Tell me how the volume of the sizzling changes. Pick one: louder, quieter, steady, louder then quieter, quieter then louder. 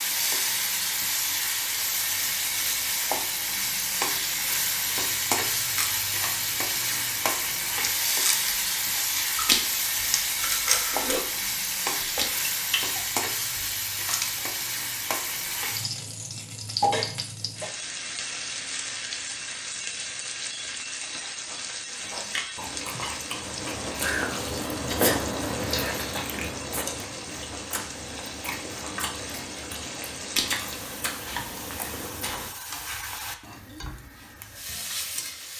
quieter.